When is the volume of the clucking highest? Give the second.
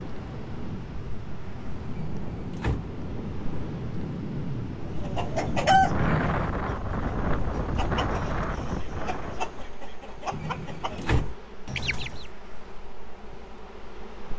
6 s.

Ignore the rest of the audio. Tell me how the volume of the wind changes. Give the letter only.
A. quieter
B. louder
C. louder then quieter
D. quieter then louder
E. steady
B.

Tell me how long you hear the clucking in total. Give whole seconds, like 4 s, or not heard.
7 s.